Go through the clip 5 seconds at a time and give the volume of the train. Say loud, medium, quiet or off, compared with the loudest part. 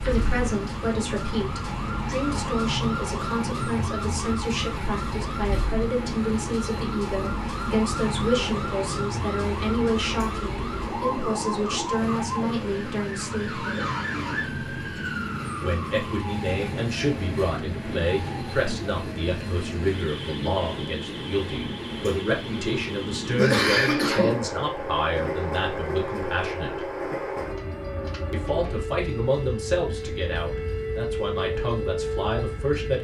loud, loud, loud, loud, loud, loud, medium.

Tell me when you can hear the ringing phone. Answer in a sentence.
You can't hear the ringing phone here.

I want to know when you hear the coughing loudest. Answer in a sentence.
The volume of the coughing peaks at 24 seconds.